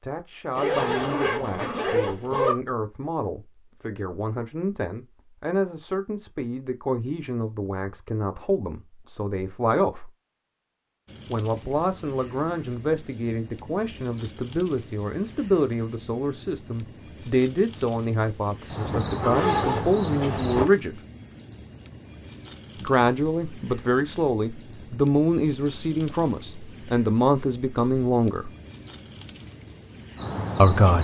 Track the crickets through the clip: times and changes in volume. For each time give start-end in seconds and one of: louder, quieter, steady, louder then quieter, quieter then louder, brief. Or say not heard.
11.1-31.0 steady.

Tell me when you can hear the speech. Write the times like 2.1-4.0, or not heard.
0.0-10.1, 11.2-21.0, 22.8-28.5, 30.6-31.0.